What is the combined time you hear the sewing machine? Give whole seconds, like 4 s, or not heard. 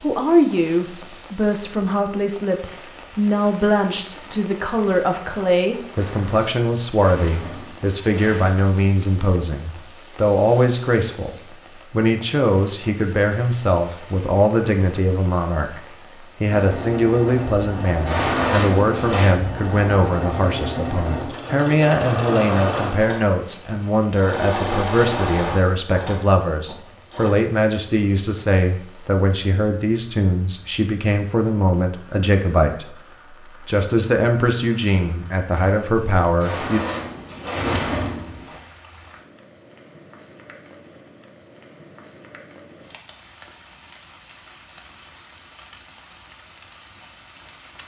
11 s.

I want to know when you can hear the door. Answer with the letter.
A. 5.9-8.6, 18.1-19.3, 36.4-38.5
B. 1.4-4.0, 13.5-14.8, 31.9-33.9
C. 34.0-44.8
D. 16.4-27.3
A.